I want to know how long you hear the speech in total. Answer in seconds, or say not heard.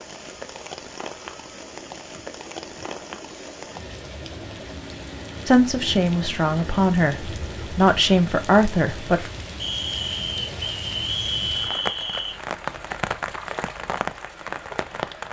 4 s.